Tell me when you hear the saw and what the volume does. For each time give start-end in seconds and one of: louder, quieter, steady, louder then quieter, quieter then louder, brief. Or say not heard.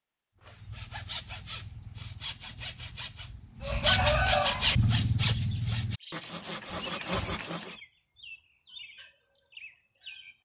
0.4-7.8 louder then quieter.